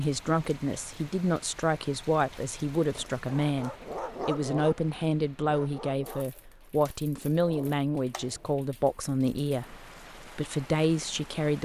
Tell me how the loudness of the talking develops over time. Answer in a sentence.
The loudness of the talking stays about the same.